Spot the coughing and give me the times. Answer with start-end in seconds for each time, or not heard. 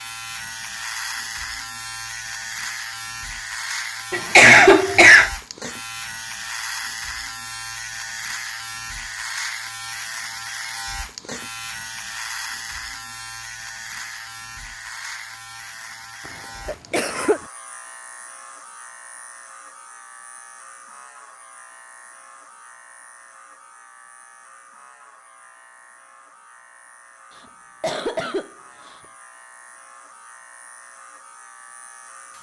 4.1-5.3, 16.6-17.4, 27.4-28.9.